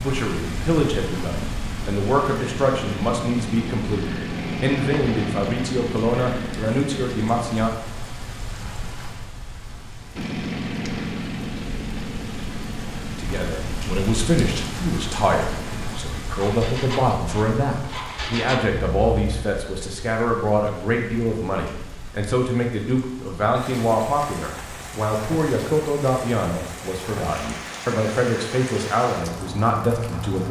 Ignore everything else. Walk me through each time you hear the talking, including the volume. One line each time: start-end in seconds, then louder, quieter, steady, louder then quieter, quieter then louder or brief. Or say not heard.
0.0-7.7 steady
13.2-30.4 steady.